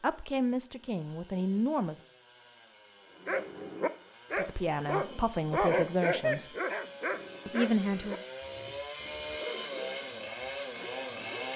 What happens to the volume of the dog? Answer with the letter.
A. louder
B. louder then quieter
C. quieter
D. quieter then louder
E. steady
C.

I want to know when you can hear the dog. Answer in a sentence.
The dog can be heard from 3.2 to 11.5 s.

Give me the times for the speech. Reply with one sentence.
You can hear the speech from 0.0 to 2.0 s, from 4.3 to 6.5 s and from 7.5 to 8.2 s.